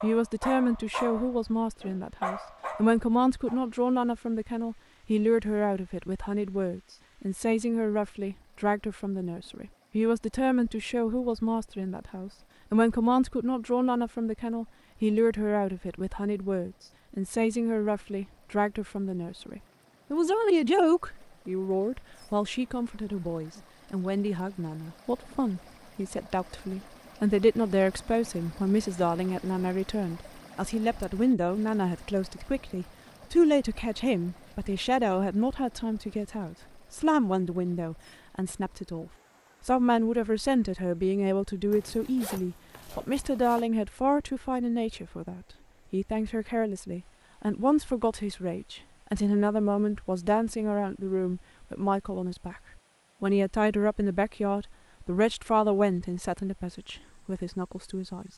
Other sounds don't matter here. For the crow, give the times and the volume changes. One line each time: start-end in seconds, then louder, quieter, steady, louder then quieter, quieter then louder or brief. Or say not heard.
not heard.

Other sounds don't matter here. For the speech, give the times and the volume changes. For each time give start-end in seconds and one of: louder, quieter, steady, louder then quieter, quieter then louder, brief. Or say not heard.
0.0-52.6 steady
53.2-58.3 quieter.